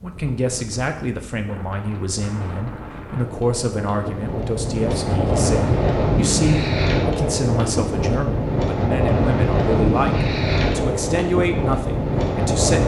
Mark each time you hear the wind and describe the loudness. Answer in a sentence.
The wind can be heard from 0.0 to 12.8 s, getting louder.